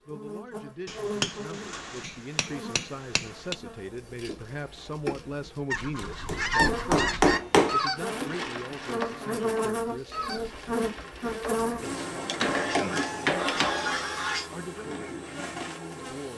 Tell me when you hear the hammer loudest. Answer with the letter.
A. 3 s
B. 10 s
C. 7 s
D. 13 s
C.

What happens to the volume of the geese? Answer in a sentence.
The volume of the geese goes down, then up.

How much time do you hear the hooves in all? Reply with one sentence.
You can't hear the hooves here.